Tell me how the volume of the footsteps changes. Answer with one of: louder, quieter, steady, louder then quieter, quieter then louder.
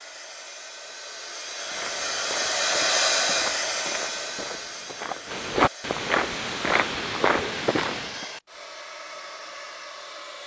louder.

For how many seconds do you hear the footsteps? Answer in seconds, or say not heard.
7 s.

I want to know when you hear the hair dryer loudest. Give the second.
3 s.